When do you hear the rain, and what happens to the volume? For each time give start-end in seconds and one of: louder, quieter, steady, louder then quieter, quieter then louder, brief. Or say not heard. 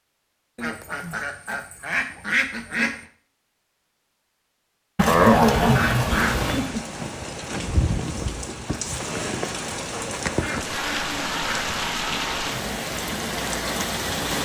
6.0-14.3 steady.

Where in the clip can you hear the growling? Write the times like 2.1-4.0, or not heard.
5.0-6.2.